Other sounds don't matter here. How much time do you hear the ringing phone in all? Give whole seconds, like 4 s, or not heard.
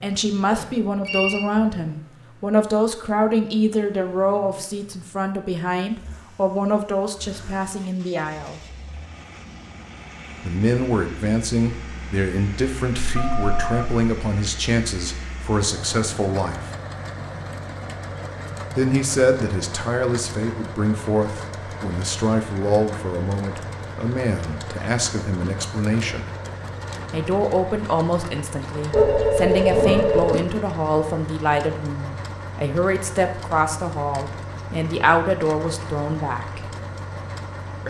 3 s.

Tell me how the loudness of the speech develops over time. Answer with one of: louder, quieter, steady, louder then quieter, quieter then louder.
steady.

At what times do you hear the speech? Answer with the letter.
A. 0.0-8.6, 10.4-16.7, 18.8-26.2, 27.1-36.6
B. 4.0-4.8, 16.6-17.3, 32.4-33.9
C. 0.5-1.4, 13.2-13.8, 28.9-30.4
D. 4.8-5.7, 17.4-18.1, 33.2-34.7
A.